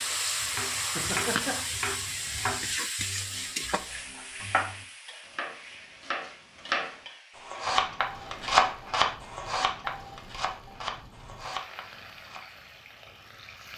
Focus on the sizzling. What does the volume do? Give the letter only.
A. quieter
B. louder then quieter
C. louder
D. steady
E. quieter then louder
A.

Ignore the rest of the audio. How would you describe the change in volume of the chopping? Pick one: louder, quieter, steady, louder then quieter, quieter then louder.
louder then quieter.